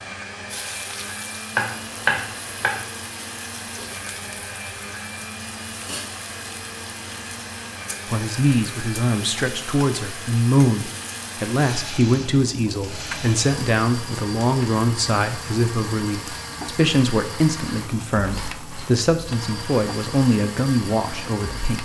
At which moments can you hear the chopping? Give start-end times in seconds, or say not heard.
1.6-2.9.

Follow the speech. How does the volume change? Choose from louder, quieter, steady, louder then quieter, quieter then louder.
steady.